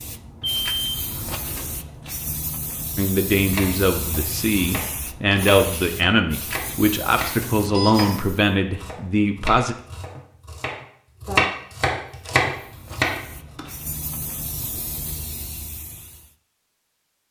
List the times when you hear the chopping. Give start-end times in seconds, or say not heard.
3.4-13.2.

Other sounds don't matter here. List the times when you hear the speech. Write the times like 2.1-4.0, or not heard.
3.0-9.8.